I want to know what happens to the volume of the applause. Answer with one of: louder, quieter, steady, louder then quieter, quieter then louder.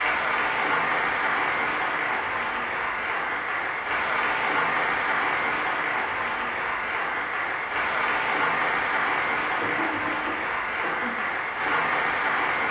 steady.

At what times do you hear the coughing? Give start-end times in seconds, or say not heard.
9.6-11.2.